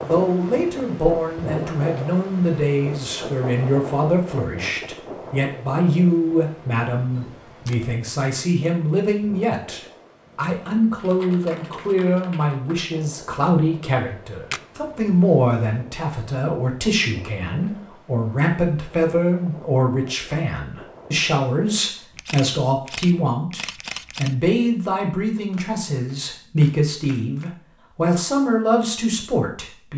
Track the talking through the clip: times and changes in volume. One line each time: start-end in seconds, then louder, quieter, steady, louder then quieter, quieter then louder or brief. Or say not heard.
0.0-29.9 steady.